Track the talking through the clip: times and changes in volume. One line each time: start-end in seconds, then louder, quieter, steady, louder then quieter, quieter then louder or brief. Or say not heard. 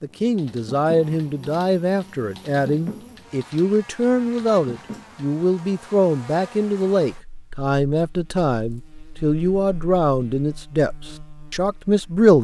0.0-12.3 steady.